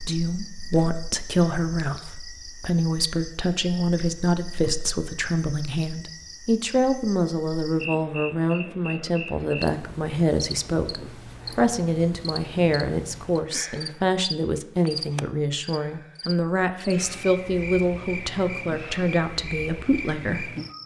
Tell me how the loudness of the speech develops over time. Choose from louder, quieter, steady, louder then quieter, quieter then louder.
steady.